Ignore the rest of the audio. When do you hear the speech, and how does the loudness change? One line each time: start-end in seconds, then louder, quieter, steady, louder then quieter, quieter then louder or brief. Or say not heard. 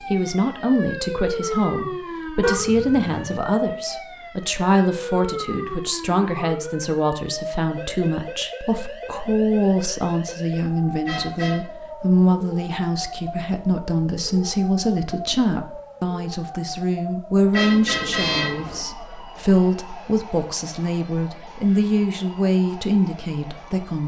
0.1-24.0 steady.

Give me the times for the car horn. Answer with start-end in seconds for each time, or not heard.
2.4-3.4, 11.1-11.7, 17.5-18.9.